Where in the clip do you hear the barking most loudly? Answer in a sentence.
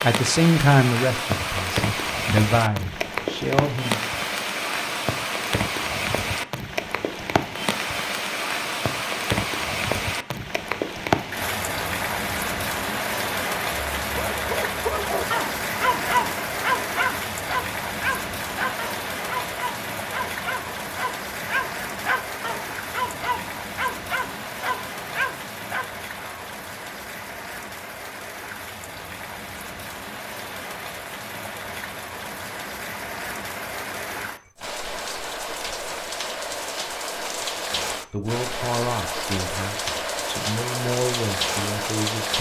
The volume of the barking peaks at 16 seconds.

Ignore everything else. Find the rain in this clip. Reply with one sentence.
The rain can be heard from 0.0 to 42.3 s.